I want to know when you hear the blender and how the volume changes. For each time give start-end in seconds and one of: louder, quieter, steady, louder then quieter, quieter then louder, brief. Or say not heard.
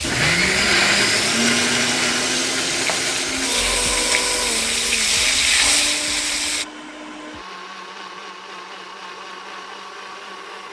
0.0-10.6 quieter.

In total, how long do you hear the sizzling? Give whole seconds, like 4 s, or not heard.
7 s.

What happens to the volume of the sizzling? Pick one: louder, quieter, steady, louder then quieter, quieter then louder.
louder.